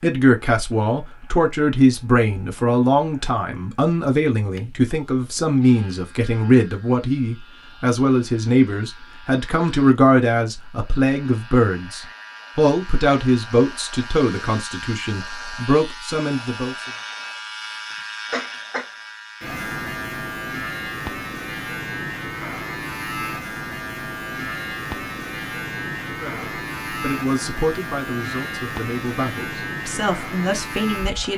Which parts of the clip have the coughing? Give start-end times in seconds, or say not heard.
17.9-18.9.